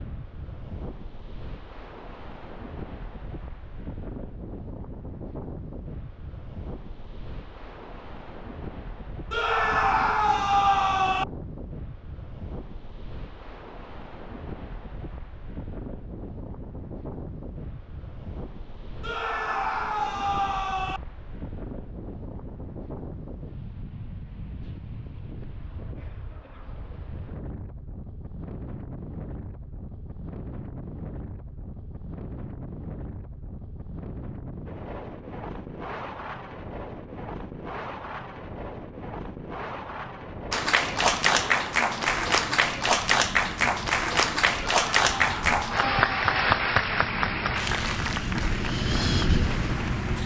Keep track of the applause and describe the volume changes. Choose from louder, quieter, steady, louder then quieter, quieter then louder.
quieter.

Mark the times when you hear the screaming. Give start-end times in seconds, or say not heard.
9.3-11.2, 19.0-21.0, 44.6-46.5.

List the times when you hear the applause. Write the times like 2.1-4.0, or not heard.
40.5-50.2.